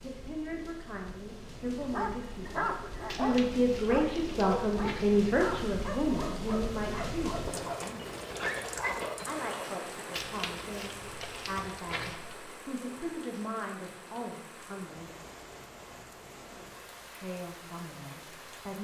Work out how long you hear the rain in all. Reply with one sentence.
You can hear the rain for 19 seconds altogether.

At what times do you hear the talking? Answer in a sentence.
The talking can be heard from 0.0 to 8.1 s, from 9.2 to 15.1 s and from 17.1 to 18.7 s.